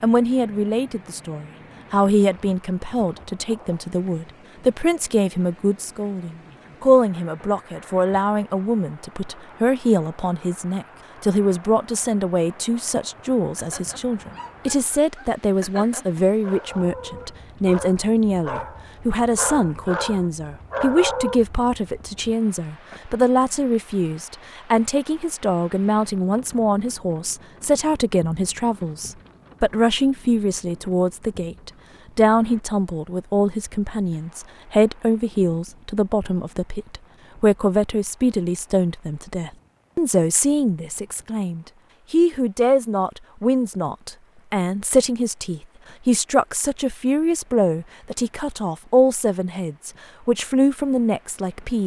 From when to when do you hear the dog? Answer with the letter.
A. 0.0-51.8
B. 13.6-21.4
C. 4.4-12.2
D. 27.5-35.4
B.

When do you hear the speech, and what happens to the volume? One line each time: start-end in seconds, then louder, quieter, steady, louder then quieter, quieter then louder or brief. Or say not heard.
0.0-51.8 steady.